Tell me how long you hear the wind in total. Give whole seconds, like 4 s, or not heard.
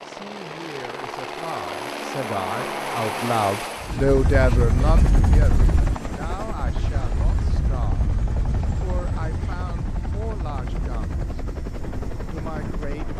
9 s.